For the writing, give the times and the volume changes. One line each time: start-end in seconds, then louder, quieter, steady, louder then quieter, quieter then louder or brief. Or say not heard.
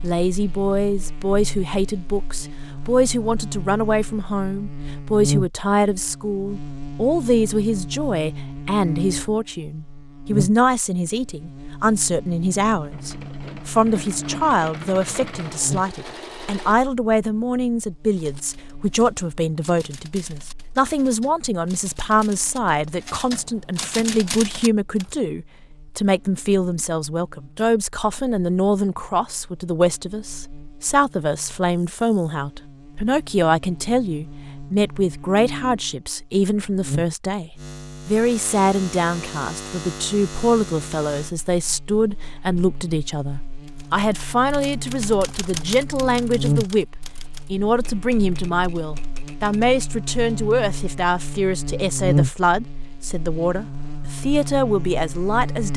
not heard.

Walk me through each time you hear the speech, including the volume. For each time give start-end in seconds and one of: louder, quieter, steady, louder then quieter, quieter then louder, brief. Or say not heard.
0.0-55.7 steady.